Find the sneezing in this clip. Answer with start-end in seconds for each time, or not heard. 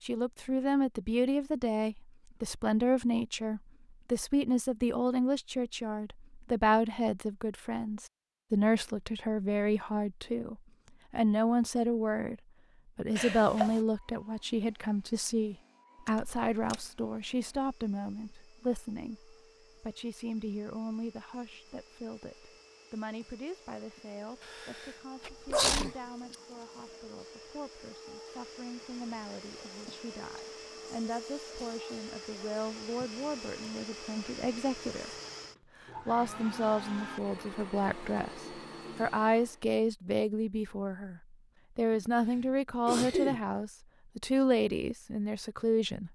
13.2-13.8, 24.5-26.4, 41.9-43.5.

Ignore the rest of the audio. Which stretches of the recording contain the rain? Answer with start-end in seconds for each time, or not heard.
not heard.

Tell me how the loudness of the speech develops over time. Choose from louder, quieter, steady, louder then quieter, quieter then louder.
quieter then louder.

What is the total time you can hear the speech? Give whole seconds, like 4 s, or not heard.
45 s.